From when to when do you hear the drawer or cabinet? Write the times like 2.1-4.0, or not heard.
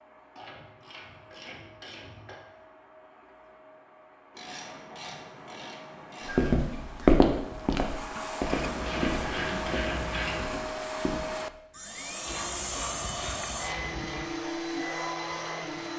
not heard.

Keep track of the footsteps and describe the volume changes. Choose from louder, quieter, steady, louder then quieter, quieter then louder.
quieter.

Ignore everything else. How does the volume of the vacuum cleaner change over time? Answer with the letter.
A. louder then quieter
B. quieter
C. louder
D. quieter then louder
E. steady
C.